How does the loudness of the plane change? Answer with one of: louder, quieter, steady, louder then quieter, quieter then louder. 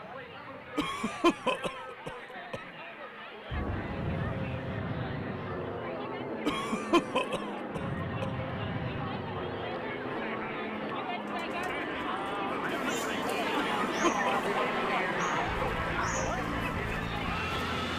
louder.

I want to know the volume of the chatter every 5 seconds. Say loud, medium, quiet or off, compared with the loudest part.
medium, medium, loud, loud.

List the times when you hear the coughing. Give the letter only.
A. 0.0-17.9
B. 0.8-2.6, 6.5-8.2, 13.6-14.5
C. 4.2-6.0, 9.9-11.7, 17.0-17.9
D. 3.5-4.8
B.